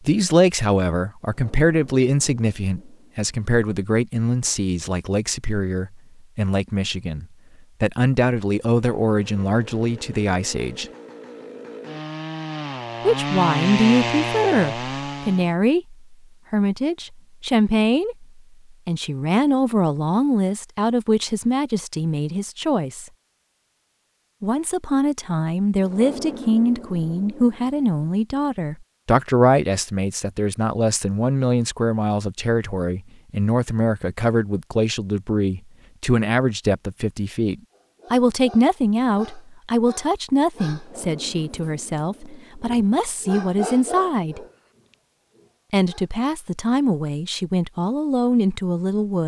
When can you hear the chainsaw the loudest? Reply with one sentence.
The volume of the chainsaw peaks at 14 seconds.